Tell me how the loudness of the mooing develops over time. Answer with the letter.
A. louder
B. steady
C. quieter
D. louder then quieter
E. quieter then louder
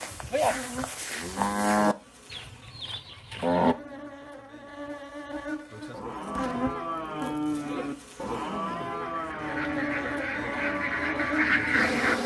C.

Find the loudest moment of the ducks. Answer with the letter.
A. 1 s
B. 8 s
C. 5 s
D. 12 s
D.